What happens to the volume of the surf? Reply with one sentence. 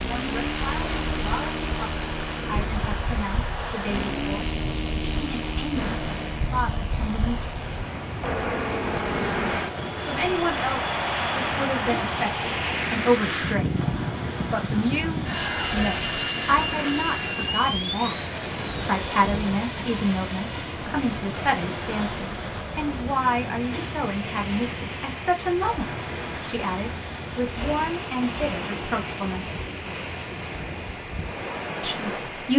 The volume of the surf stays about the same.